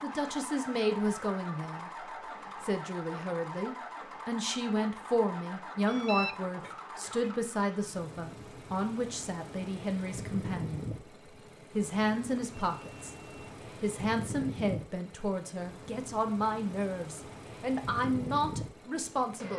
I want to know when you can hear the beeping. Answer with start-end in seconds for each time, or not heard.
5.8-6.4, 12.3-13.5.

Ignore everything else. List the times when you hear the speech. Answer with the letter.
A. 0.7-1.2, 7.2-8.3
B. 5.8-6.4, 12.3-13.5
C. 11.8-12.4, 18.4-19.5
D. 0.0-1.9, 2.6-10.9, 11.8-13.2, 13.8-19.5
D.